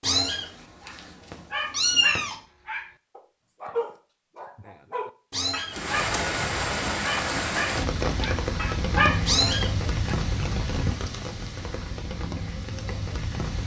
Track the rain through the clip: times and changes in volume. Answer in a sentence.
The rain can be heard from 5.7 to 13.6 s, getting quieter.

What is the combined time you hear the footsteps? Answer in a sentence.
You can't hear the footsteps here.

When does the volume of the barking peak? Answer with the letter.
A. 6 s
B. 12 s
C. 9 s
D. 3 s
C.